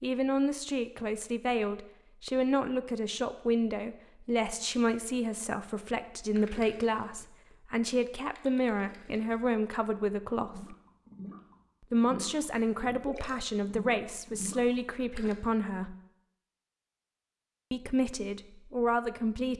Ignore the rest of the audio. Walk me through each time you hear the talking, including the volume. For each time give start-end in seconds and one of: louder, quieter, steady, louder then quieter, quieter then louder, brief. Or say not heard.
0.0-10.8 steady
11.9-15.9 steady
17.7-19.5 brief.